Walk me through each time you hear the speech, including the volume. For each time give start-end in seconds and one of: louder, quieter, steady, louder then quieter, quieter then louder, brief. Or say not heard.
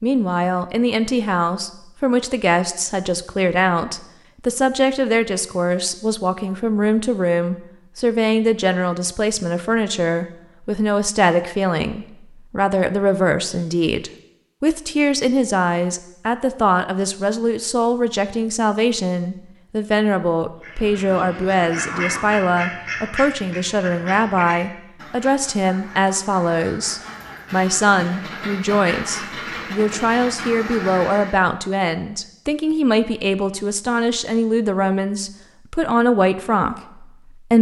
0.0-37.5 steady.